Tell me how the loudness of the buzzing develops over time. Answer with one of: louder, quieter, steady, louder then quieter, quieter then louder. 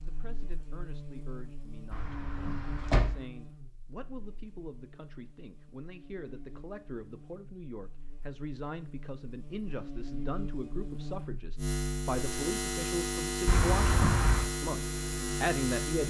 quieter then louder.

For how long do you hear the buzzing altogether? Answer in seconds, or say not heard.
16 s.